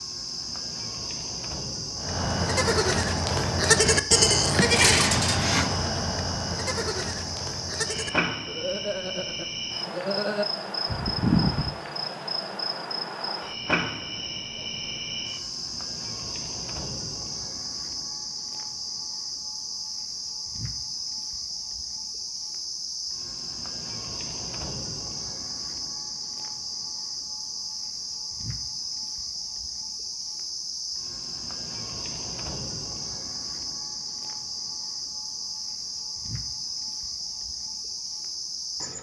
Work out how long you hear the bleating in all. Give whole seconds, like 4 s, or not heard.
10 s.